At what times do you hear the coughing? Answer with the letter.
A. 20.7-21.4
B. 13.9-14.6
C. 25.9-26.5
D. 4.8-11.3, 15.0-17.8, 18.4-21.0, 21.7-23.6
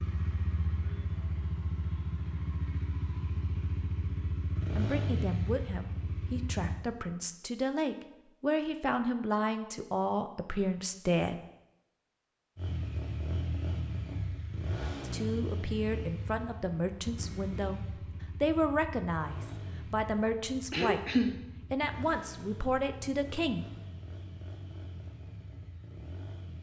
A.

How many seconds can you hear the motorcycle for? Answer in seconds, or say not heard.
21 s.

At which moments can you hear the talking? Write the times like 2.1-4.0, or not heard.
4.8-11.3, 15.0-17.8, 18.4-21.0, 21.7-23.6.